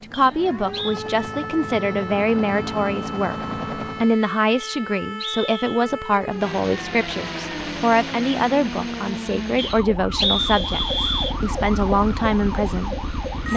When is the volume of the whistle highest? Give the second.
10 s.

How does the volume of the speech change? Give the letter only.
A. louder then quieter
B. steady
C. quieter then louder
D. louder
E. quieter
B.